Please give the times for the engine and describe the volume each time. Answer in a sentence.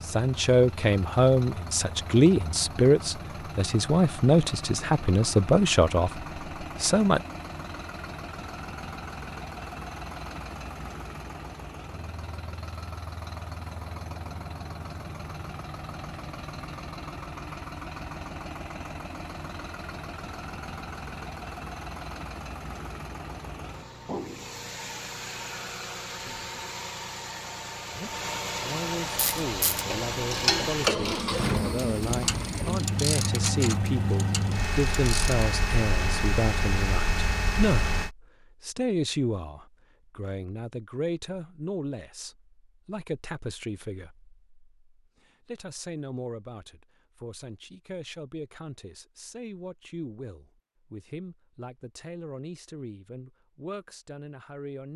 The engine can be heard from 0.0 to 38.1 s, getting louder.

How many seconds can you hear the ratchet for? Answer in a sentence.
You can hear the ratchet for 6 seconds altogether.